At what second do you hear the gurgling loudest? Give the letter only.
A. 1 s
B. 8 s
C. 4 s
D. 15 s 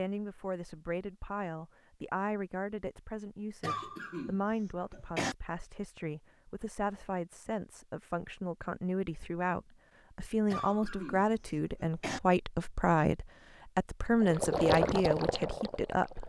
D.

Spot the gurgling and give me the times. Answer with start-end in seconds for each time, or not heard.
14.2-16.2.